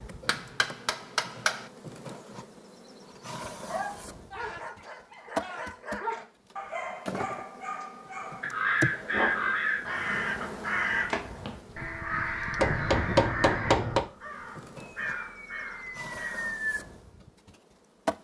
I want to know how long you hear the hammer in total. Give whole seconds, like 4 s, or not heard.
3 s.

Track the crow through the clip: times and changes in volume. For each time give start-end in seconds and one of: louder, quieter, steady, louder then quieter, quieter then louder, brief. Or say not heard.
8.4-16.8 quieter.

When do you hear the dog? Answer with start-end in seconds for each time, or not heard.
3.6-10.7.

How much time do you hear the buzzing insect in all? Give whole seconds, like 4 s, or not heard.
18 s.